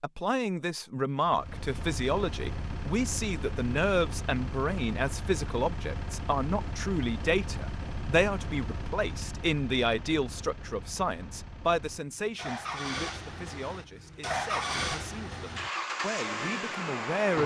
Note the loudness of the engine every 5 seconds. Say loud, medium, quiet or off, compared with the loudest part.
medium, medium, loud, loud.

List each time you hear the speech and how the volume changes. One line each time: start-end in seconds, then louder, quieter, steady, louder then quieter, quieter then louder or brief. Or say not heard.
0.0-17.4 quieter.